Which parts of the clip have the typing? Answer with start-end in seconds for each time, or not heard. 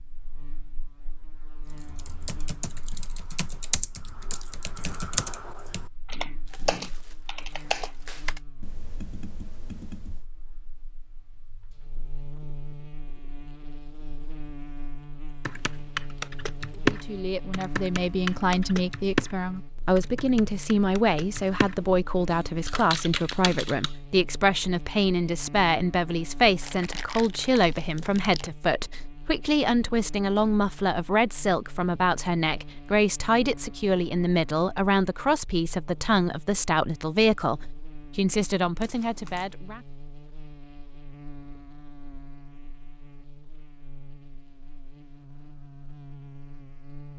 1.7-10.2, 15.4-23.9.